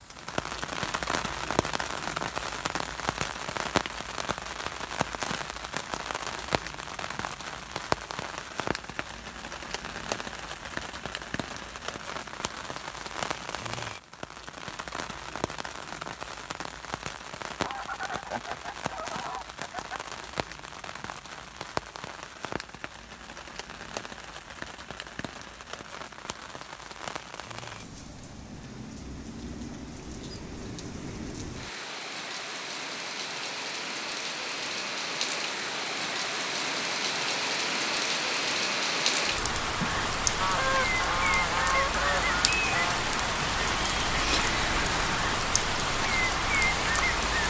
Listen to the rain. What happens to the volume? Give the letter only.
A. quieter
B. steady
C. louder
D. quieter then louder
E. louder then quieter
D.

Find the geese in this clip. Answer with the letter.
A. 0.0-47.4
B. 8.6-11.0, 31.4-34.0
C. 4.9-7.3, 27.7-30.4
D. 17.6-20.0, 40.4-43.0
D.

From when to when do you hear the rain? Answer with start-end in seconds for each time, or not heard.
0.0-47.4.